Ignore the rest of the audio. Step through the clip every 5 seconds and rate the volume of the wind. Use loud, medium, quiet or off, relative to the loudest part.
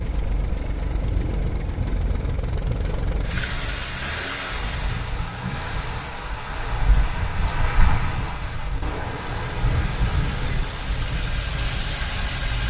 medium, loud, loud.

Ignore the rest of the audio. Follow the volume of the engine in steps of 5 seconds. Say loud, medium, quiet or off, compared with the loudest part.
loud, medium, loud.